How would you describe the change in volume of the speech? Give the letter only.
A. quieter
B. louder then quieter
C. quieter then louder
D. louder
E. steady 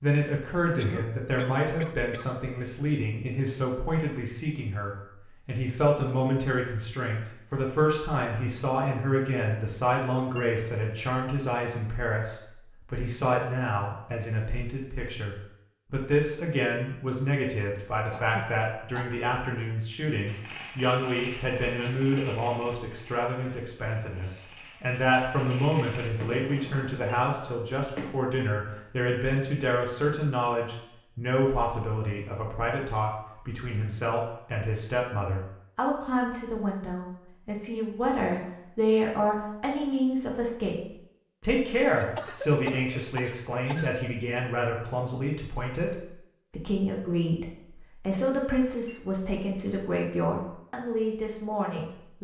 E.